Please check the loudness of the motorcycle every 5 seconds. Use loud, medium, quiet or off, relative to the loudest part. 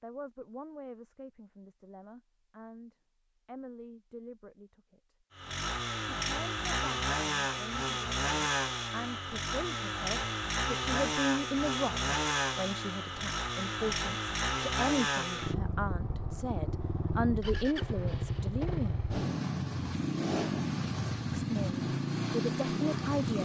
off, loud, loud, loud, loud.